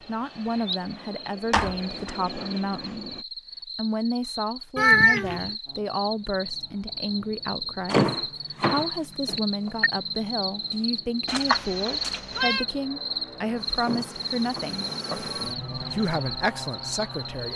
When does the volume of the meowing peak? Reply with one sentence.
The loudest moment of the meowing is at 5 seconds.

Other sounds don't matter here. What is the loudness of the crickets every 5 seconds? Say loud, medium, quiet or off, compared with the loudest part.
medium, loud, loud, loud.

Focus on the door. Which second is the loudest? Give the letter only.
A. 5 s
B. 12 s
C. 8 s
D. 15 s
C.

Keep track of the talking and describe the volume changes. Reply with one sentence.
The loudness of the talking stays about the same.